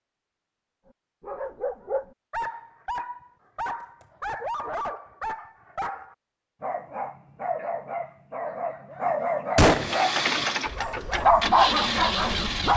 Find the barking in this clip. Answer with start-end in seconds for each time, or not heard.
1.2-12.7.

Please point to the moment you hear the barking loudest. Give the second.
11 s.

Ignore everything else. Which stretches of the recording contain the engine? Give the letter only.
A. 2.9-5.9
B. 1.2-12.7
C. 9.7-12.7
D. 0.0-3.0
C.